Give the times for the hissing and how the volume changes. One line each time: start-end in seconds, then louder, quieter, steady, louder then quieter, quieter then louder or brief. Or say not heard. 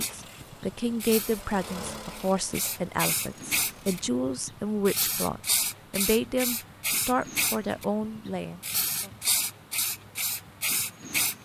0.0-11.4 louder.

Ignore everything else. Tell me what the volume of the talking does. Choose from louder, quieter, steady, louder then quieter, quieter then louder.
steady.